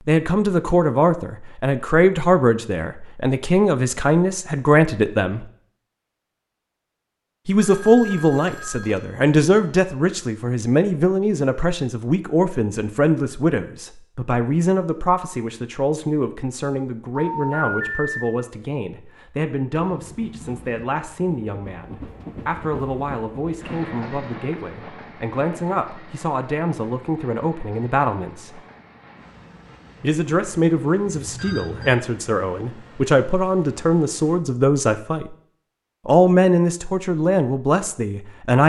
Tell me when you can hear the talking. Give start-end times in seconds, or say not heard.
0.1-5.5, 7.5-28.6, 30.0-35.4, 36.0-38.6.